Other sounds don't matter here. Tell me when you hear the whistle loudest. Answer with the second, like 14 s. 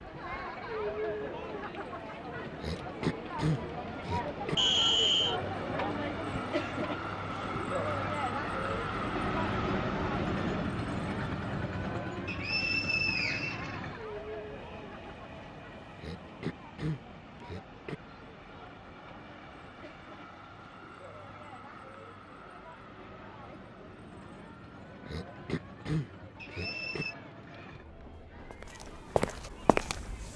5 s.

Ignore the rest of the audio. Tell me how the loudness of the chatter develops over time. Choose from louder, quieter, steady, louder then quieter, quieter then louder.
quieter.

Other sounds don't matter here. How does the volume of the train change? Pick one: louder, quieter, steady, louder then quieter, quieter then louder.
louder then quieter.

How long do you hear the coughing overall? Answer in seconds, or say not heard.
6 s.